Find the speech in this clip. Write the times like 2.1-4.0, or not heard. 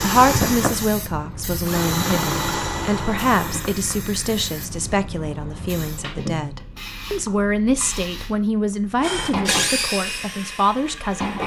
0.0-11.4.